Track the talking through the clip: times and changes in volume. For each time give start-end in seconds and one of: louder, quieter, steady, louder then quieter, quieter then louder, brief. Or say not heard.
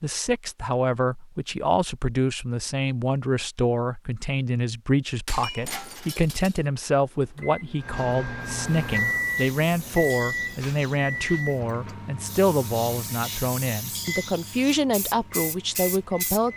0.0-16.5 steady.